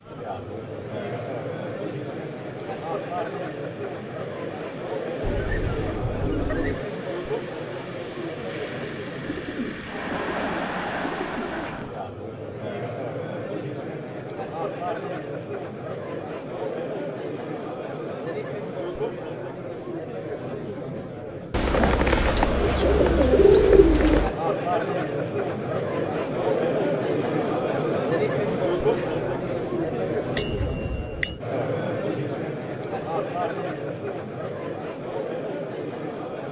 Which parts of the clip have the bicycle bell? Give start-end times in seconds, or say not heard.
30.4-31.4.